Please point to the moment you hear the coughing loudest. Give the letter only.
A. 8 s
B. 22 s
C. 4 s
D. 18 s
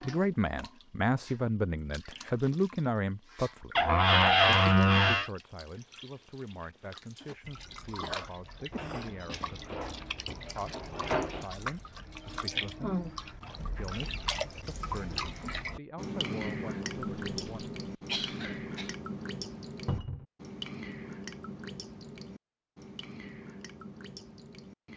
D.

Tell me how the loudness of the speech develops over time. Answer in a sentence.
The volume of the speech goes down.